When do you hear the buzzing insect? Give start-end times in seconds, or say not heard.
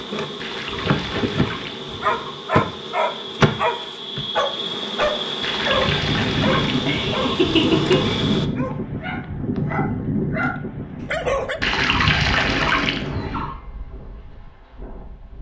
0.0-8.4.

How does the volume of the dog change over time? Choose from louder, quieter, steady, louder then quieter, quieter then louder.
quieter then louder.